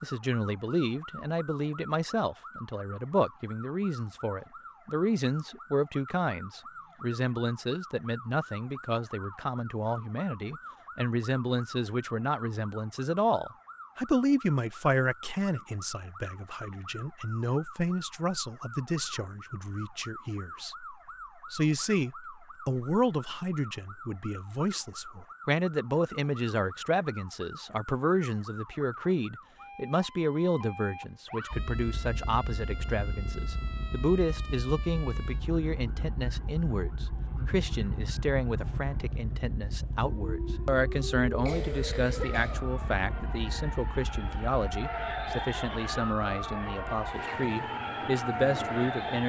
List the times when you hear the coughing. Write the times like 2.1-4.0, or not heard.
41.4-42.6.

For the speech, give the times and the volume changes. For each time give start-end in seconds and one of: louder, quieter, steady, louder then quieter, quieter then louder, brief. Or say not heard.
0.0-49.2 steady.